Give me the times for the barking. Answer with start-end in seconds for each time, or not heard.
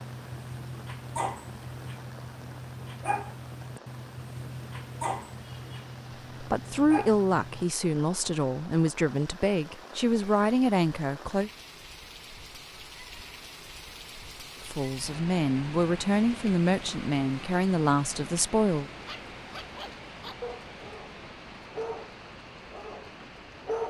0.0-7.7, 19.1-23.8.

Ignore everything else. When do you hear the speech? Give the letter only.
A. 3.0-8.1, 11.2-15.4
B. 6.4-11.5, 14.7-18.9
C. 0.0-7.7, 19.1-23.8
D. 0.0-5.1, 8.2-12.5
B.